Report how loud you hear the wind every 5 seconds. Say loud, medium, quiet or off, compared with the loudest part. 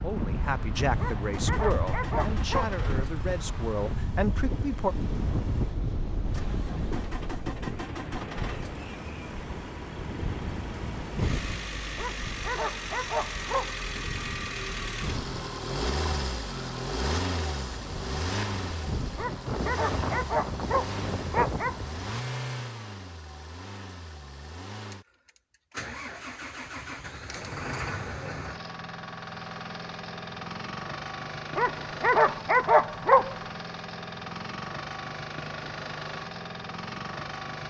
loud, loud, medium, loud, loud, off, off, off.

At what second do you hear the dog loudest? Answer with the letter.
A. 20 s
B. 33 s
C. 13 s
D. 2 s
B.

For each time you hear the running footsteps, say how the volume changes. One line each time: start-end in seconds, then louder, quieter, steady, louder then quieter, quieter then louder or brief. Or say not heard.
not heard.